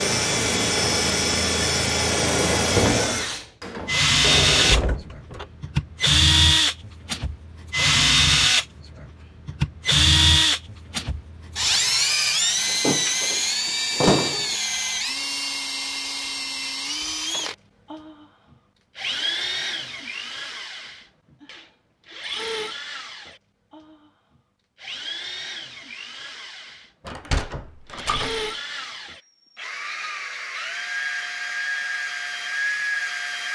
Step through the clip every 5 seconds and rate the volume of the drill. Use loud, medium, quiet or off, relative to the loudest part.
loud, loud, loud, medium, quiet, quiet, medium.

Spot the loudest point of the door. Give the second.
14 s.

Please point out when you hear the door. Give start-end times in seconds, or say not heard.
4.2-5.5, 12.7-14.6, 27.1-28.5.